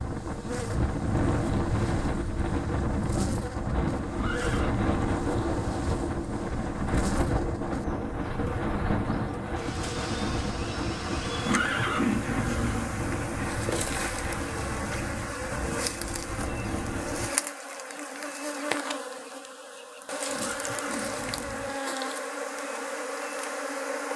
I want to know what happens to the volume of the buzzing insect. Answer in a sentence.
The loudness of the buzzing insect goes up.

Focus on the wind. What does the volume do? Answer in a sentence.
The loudness of the wind goes down.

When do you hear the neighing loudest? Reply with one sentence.
The loudest moment of the neighing is at 12 seconds.